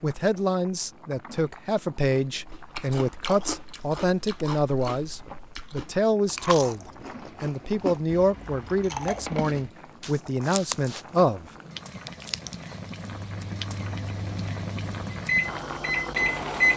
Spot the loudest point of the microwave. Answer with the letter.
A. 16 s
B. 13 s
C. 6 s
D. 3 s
A.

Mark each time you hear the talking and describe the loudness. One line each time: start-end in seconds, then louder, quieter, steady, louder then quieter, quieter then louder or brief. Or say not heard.
0.0-11.4 steady.